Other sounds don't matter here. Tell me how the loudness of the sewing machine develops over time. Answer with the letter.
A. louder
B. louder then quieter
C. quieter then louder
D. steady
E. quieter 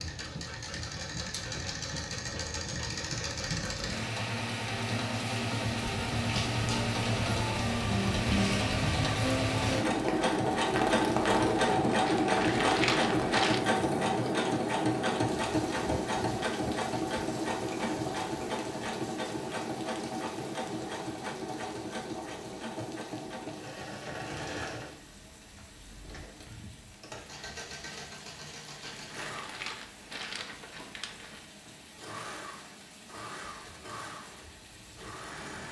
B.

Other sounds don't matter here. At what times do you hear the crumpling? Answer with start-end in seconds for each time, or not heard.
12.1-13.6, 28.9-31.4.